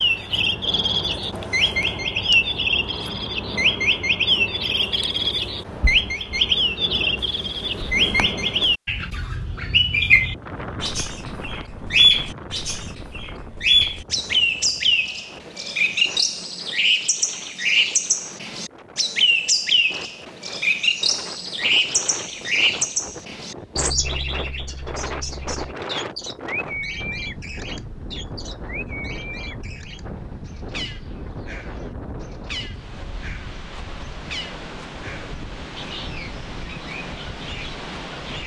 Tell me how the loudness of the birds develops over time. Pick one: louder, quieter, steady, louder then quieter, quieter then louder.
quieter.